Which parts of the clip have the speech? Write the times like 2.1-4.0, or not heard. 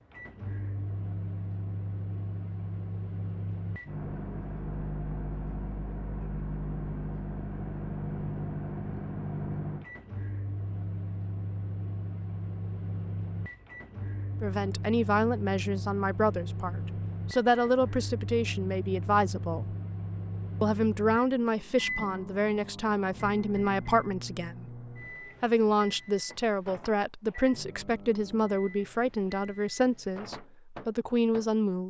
14.4-19.8, 20.6-24.8, 25.4-31.8.